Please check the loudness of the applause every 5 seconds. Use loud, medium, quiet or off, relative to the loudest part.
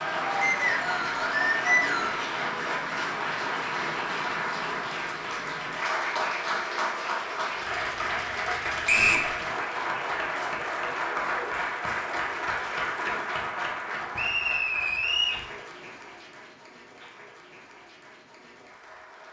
loud, loud, loud, quiet.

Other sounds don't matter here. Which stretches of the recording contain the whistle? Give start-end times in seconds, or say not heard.
0.4-2.2, 8.8-9.3, 14.2-15.4.